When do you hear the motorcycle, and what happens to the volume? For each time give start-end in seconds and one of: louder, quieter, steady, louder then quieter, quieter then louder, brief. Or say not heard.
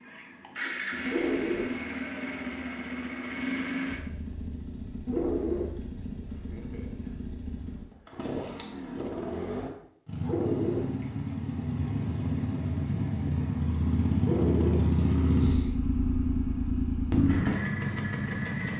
0.0-18.7 quieter then louder.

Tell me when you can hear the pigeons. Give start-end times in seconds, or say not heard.
1.1-1.7, 5.0-5.7, 10.2-10.9, 14.2-14.8.